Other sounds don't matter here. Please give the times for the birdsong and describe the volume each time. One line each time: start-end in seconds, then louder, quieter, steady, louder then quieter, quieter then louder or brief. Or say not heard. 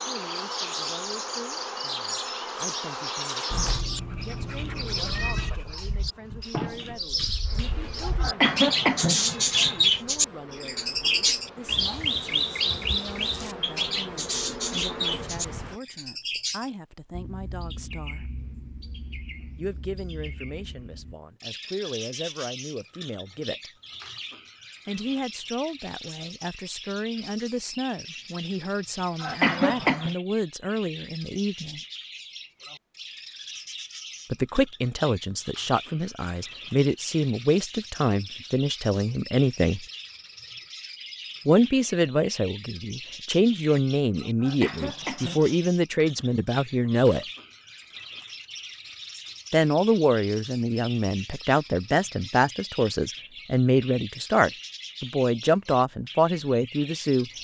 0.2-57.3 quieter.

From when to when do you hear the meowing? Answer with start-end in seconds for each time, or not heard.
3.5-5.5.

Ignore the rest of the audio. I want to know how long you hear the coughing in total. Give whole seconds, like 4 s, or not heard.
4 s.